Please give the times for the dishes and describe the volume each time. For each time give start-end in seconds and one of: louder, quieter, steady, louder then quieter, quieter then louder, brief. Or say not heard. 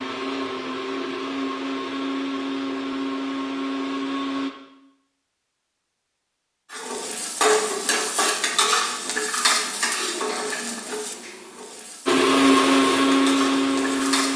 not heard.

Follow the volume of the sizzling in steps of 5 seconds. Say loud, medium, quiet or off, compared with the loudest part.
off, loud, medium.